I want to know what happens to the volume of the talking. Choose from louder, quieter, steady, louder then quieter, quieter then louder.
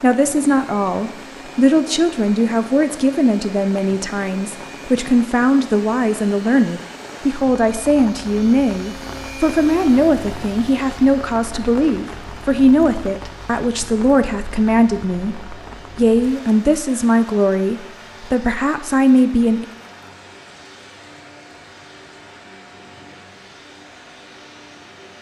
steady.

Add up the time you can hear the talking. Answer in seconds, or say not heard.
19 s.